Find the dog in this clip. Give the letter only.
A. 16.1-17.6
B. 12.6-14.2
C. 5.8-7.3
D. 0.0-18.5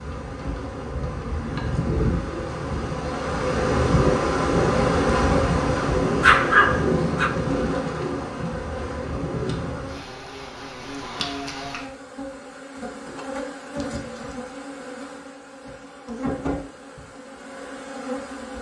C.